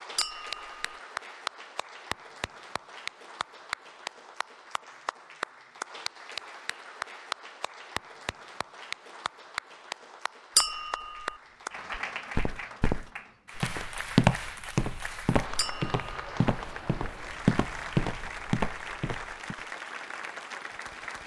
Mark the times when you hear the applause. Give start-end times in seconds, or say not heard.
0.0-21.2.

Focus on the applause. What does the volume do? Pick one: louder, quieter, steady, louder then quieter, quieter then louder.
steady.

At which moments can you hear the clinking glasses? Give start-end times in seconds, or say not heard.
0.1-0.9, 10.6-11.3, 15.6-16.1.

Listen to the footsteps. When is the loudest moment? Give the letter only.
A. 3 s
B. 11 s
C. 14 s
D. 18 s
C.